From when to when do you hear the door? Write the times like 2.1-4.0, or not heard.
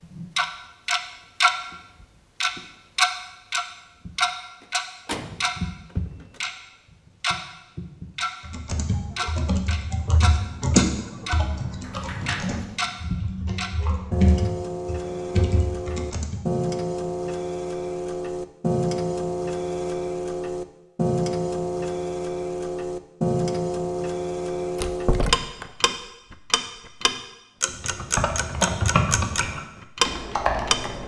4.6-6.4, 11.8-12.9, 24.8-25.6.